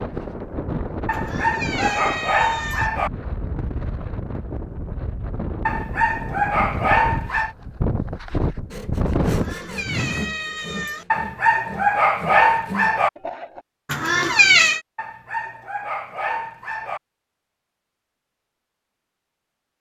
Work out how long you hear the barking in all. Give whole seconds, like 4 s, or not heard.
8 s.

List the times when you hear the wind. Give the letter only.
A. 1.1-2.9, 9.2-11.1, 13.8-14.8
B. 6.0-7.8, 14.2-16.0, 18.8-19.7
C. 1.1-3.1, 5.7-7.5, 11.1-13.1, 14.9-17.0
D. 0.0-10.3
D.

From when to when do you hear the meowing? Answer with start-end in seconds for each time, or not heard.
1.1-2.9, 9.2-11.1, 13.8-14.8.